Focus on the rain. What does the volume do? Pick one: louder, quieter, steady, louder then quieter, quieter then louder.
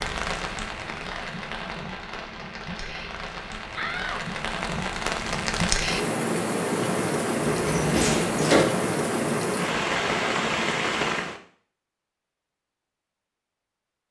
louder.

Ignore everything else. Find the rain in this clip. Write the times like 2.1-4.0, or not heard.
0.0-11.4.